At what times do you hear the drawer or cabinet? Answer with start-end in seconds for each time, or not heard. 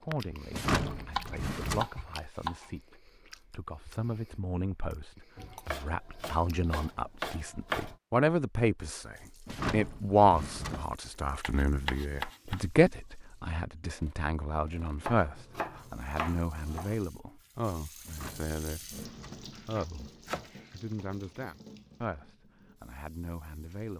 0.5-1.9, 9.4-10.9, 18.1-19.6.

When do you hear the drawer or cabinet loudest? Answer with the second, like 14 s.
1 s.